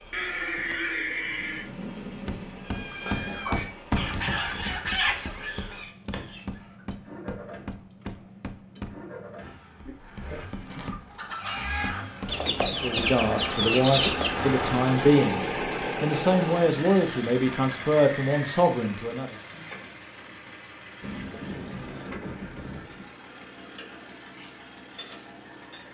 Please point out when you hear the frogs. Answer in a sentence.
The frogs can't be heard in this clip.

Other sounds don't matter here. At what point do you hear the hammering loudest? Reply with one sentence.
The volume of the hammering peaks at 4 seconds.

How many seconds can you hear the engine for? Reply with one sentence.
You can hear the engine for 26 seconds altogether.